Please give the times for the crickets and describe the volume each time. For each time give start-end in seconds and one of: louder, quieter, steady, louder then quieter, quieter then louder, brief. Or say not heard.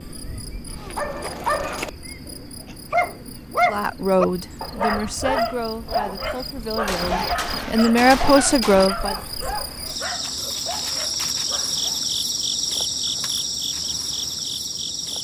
0.0-15.1 louder.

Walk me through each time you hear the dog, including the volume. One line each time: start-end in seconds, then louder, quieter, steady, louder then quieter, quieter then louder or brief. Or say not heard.
0.8-11.8 quieter.